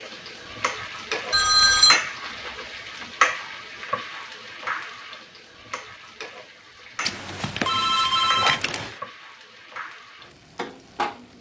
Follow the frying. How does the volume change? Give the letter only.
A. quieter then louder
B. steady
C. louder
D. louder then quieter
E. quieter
E.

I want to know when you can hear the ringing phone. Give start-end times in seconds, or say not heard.
1.3-2.0, 7.0-8.9.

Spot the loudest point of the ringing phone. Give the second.
2 s.